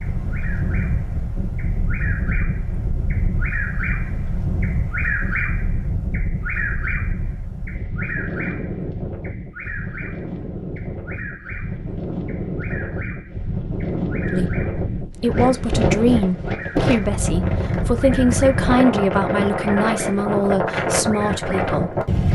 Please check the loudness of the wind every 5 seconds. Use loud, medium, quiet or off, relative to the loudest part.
medium, medium, medium, loud, loud.